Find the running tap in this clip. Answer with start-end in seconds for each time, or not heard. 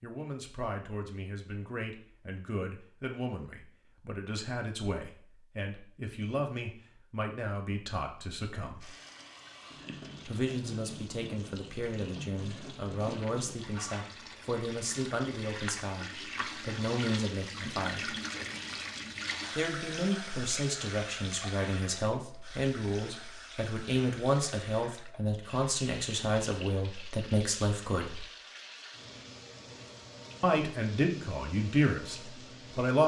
8.8-33.0.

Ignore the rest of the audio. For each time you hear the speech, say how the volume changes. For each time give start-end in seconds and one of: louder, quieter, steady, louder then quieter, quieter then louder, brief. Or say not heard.
0.0-8.9 steady
10.2-18.1 steady
19.6-28.2 steady
30.4-33.0 brief.